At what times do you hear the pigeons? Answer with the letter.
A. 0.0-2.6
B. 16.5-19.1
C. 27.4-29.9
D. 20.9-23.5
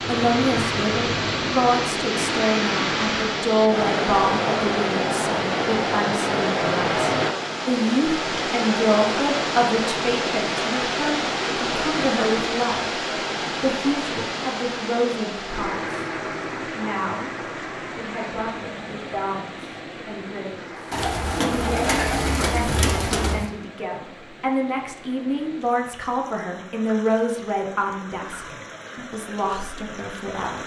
D.